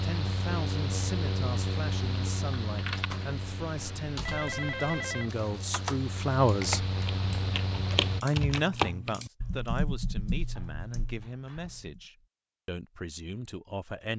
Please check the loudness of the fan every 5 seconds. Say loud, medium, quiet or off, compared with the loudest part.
loud, loud, off.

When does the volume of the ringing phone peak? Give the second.
5 s.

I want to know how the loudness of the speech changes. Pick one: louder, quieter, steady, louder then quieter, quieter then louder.
louder then quieter.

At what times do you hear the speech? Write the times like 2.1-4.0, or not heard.
0.0-6.8, 8.2-14.1.